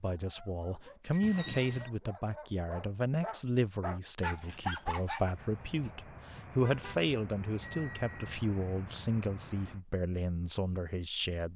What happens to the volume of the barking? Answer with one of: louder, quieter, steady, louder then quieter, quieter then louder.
louder.